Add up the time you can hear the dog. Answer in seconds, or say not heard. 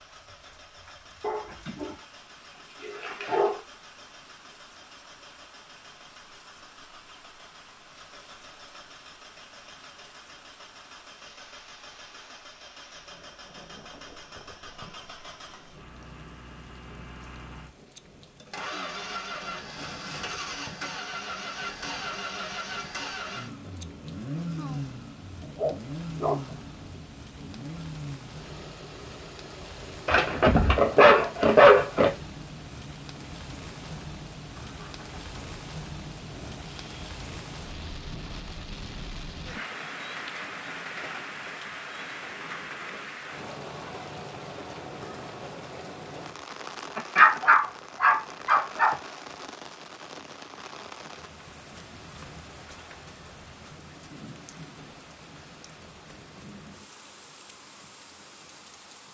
7 s.